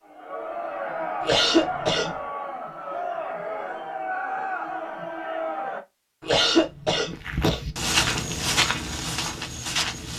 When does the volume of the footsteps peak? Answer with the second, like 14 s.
8 s.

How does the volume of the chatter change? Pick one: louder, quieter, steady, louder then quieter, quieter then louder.
steady.